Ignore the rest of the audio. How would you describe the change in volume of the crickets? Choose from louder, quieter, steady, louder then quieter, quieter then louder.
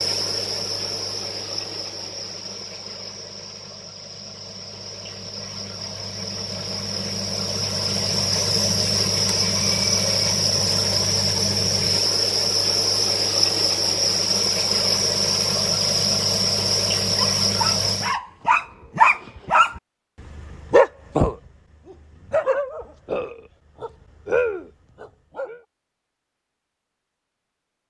louder.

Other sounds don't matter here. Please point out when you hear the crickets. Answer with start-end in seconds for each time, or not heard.
0.0-18.2.